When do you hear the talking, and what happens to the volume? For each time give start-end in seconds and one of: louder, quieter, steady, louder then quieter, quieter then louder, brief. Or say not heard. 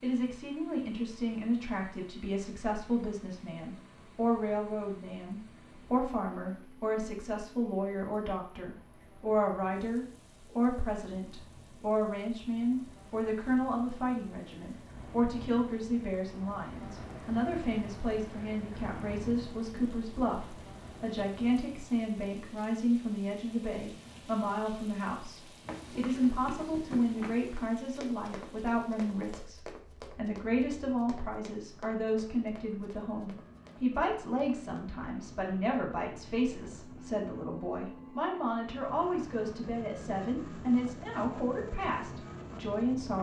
0.0-43.1 steady.